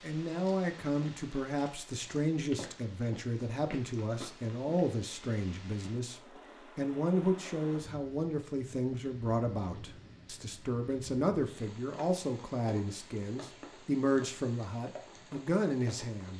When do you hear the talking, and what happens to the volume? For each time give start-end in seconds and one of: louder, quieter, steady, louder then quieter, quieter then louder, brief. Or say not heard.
0.0-16.3 steady.